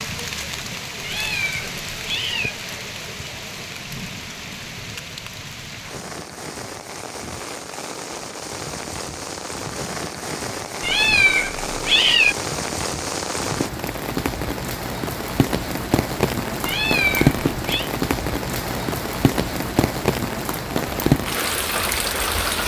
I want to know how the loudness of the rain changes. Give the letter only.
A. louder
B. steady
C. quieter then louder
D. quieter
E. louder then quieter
A.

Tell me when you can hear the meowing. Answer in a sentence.
You can hear the meowing from 1.0 to 2.5 s, from 10.8 to 12.3 s and from 16.6 to 17.9 s.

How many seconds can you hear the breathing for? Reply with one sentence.
The breathing can't be heard in this clip.